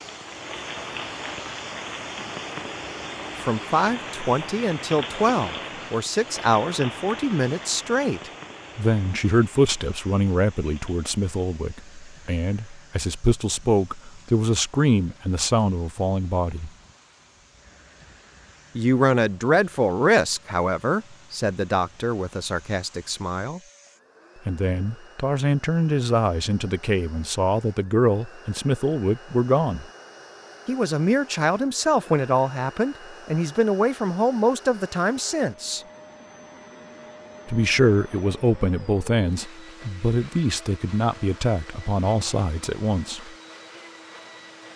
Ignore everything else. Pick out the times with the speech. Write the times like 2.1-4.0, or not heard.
3.4-16.7, 18.8-23.6, 24.4-29.9, 30.6-35.8, 37.5-43.3.